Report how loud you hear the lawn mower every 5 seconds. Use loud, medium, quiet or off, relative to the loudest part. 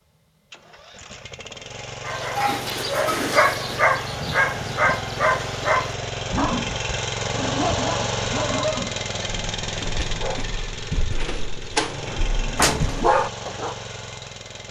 medium, loud, medium.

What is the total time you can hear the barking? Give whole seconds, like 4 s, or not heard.
12 s.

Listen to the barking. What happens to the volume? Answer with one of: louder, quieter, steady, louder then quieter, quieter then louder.
quieter then louder.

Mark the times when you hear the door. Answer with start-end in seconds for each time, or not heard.
12.6-13.0.